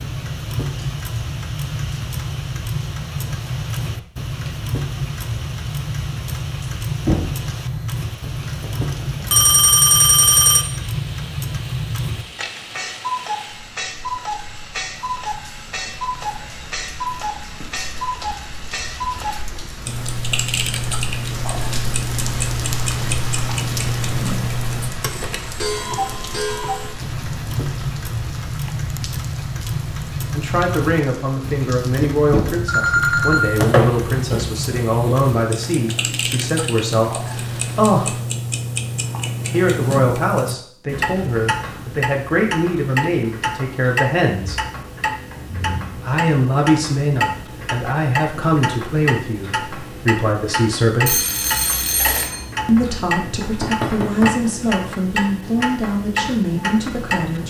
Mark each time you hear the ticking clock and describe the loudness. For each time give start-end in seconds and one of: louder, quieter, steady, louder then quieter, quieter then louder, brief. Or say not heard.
0.0-57.4 steady.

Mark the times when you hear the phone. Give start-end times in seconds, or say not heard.
8.6-10.7, 32.6-34.5, 51.0-52.5.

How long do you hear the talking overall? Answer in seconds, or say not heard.
23 s.